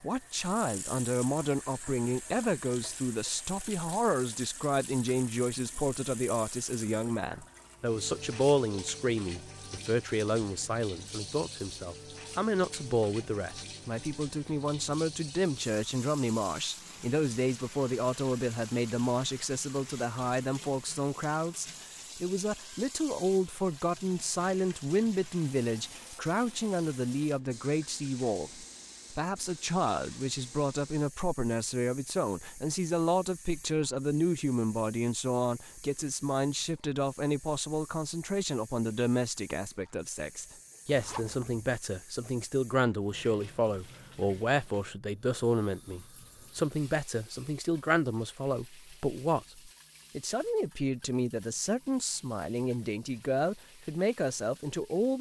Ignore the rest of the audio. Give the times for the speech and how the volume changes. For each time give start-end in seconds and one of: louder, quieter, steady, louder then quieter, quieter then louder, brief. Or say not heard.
0.0-55.1 steady.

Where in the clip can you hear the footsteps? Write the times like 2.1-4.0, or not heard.
not heard.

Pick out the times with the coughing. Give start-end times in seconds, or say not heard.
not heard.